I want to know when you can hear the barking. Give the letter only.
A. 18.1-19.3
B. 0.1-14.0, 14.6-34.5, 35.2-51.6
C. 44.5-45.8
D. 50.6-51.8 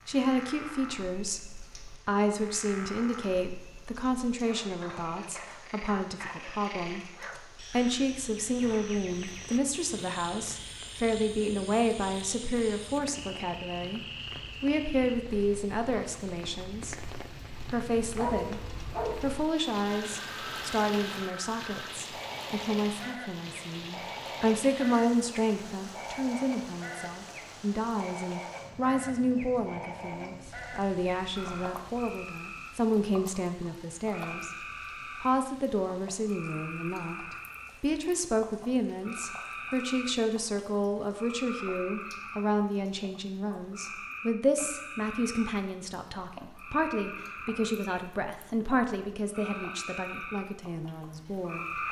A.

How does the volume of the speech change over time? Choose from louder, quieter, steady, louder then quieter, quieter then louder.
steady.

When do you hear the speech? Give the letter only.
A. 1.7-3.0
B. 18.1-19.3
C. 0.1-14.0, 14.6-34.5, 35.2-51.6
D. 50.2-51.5
C.